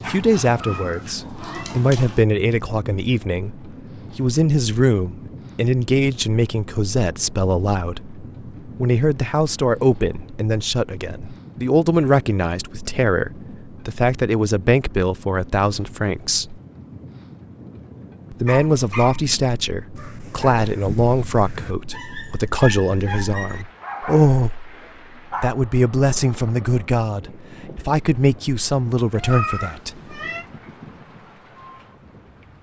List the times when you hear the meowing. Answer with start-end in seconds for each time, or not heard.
0.5-1.8, 29.1-30.4.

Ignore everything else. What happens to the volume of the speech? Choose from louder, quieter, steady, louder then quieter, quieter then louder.
steady.